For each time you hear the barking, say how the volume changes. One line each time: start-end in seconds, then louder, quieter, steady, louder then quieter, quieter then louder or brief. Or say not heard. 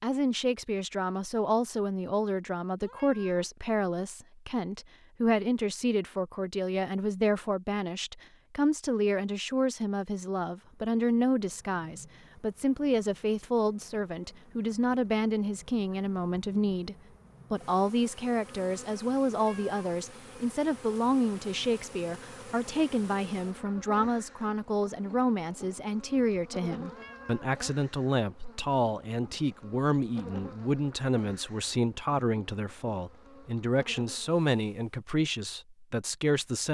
not heard.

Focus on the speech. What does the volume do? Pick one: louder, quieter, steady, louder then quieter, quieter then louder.
steady.